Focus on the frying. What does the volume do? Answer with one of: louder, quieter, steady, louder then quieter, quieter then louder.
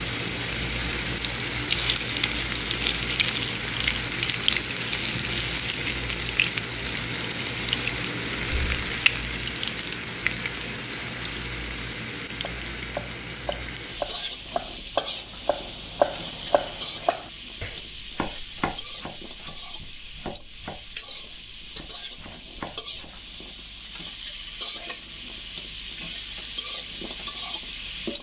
quieter.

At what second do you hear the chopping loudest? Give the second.
16 s.